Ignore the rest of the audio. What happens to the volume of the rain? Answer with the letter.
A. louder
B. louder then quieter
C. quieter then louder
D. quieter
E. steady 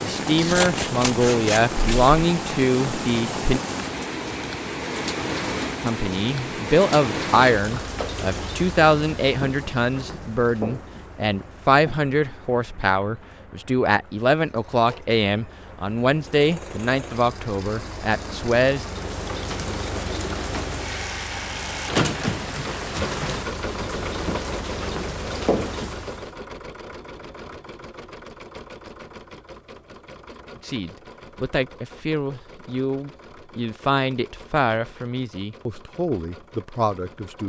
C.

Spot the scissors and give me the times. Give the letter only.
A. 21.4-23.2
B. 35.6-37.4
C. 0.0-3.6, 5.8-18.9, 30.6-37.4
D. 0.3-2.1
D.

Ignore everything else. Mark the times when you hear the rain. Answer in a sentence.
You can hear the rain from 0.0 to 26.4 s.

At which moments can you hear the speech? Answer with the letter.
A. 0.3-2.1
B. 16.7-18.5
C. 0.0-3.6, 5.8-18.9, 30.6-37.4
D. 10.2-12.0
C.